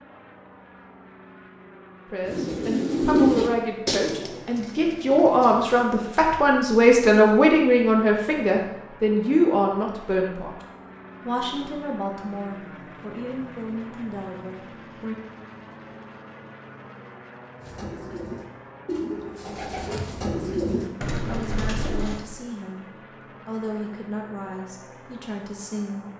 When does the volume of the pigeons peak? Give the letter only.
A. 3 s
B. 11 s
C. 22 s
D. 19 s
A.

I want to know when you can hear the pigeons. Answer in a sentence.
You can hear the pigeons from 2.2 to 5.8 s and from 17.6 to 22.2 s.